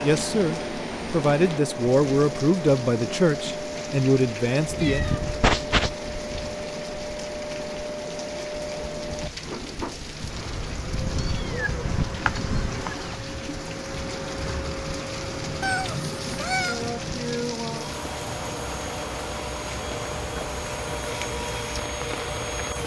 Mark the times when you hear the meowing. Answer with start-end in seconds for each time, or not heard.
4.8-5.9, 11.1-12.9, 15.6-16.9.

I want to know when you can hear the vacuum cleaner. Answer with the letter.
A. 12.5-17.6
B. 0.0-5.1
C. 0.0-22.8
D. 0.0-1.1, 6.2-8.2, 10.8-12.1
C.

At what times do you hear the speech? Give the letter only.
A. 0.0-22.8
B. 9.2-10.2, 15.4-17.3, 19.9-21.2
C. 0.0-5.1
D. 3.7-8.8
C.